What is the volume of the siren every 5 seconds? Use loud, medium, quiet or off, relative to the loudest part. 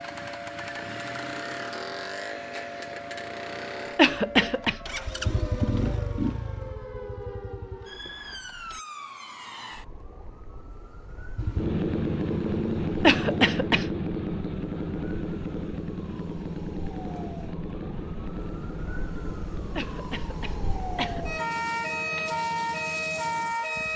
medium, medium, quiet, quiet, loud.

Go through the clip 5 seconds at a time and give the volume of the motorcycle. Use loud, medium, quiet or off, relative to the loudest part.
medium, medium, loud, medium, quiet.